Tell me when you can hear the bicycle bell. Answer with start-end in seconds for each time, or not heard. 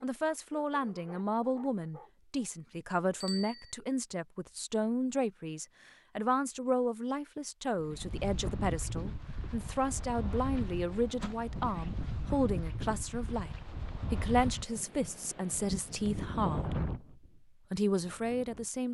3.2-3.7.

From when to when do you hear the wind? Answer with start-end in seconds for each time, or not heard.
7.8-18.8.